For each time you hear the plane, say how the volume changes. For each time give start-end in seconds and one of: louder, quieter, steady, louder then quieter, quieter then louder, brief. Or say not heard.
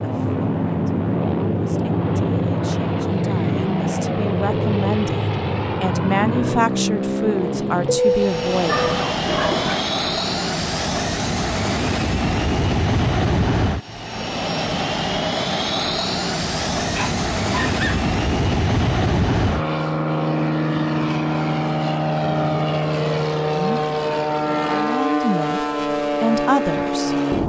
0.0-27.4 steady.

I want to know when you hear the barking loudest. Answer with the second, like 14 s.
8 s.